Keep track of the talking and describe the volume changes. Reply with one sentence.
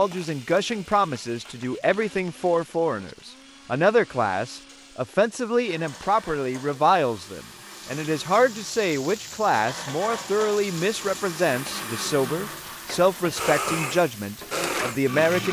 The volume of the talking stays about the same.